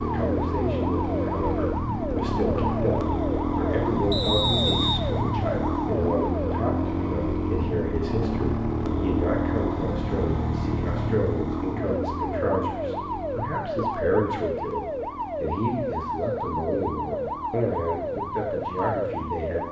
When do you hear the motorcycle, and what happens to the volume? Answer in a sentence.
The motorcycle can be heard from 0.0 to 19.6 s, getting quieter.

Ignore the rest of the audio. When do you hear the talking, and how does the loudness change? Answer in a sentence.
The talking can be heard from 0.0 to 19.6 s, at a steady volume.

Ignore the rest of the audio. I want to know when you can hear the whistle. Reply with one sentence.
The whistle can be heard from 4.1 to 5.0 s.